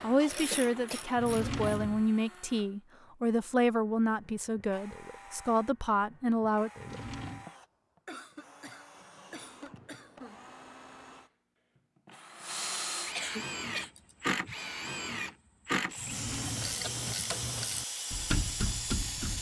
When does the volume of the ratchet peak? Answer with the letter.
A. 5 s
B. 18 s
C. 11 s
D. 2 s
B.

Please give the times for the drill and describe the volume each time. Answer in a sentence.
You can hear the drill from 0.0 to 19.3 s, getting louder.